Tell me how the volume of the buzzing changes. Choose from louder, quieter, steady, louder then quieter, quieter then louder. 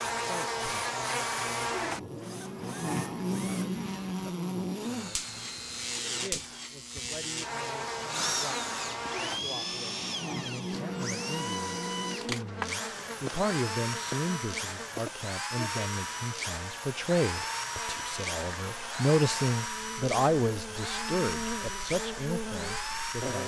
quieter.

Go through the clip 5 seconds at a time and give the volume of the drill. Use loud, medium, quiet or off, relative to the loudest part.
medium, loud, loud, loud, loud.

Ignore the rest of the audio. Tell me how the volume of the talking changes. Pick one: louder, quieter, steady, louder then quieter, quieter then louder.
louder.